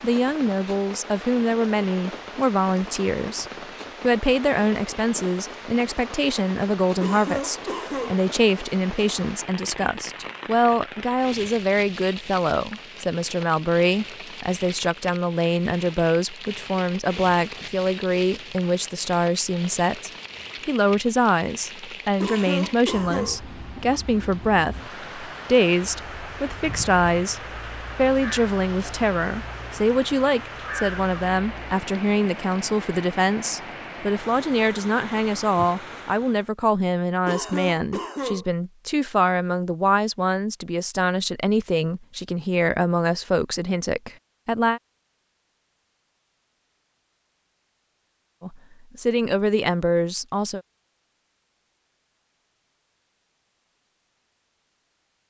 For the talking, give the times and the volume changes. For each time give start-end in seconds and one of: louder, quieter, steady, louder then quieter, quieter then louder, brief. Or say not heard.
0.0-44.8 steady
48.4-50.6 brief.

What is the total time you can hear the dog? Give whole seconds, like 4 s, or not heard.
not heard.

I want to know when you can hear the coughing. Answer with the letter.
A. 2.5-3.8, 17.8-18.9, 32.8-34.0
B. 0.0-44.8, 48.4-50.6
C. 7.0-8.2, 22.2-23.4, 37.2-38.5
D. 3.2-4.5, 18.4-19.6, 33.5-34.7
C.